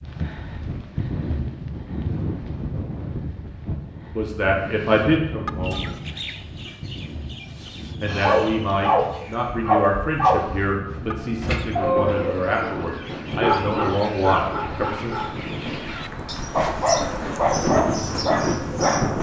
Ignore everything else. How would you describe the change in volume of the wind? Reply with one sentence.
The volume of the wind goes down, then up.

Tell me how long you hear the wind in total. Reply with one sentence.
You can hear the wind for 19 seconds altogether.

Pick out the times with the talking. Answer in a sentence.
You can hear the talking from 4.1 to 5.9 s and from 8.0 to 15.2 s.